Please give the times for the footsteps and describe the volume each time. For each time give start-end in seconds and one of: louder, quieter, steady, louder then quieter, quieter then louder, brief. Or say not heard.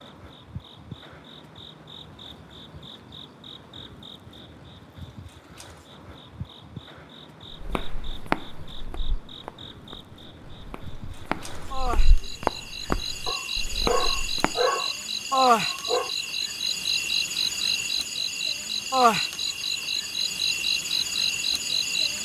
7.6-14.6 quieter then louder.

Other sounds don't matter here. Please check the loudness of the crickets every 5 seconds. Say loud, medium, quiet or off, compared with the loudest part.
quiet, quiet, medium, loud, loud.